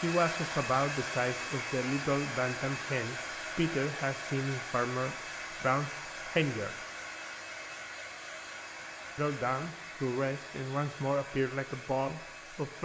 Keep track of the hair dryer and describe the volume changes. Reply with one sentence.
The loudness of the hair dryer goes down.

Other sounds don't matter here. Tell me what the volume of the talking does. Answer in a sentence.
The volume of the talking stays about the same.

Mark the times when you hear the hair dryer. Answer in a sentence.
The hair dryer can be heard from 0.0 to 12.8 s.